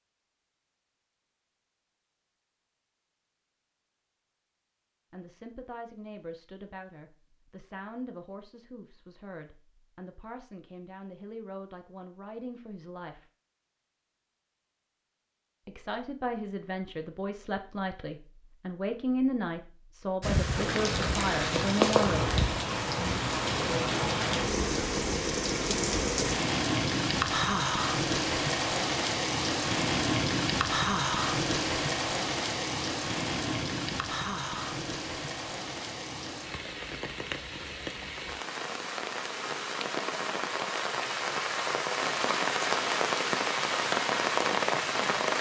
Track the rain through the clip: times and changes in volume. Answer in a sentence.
You can hear the rain from 20.2 to 45.3 s, getting quieter then louder.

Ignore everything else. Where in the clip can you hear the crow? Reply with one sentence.
The crow can't be heard in this clip.